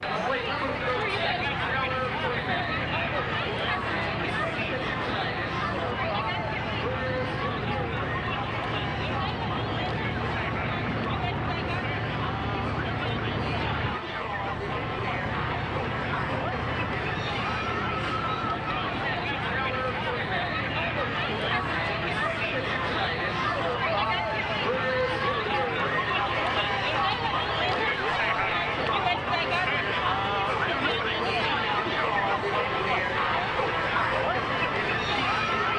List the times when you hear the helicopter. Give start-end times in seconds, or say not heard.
0.0-35.7.